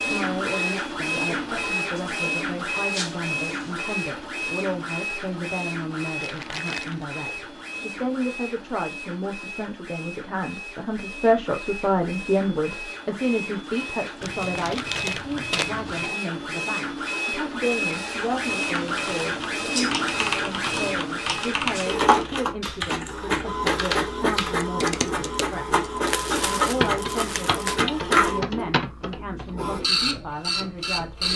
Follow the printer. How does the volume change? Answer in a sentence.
The volume of the printer goes down, then up.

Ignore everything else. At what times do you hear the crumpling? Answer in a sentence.
You can hear the crumpling from 6.2 to 7.0 s, from 14.2 to 16.1 s and from 26.1 to 27.8 s.